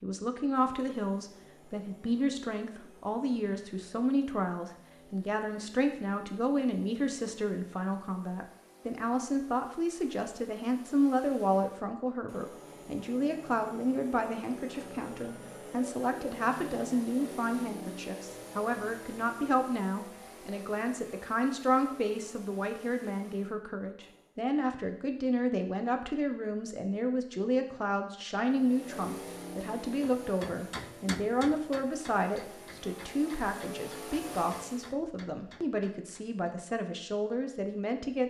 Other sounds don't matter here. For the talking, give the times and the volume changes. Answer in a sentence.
You can hear the talking from 0.0 to 38.2 s, at a steady volume.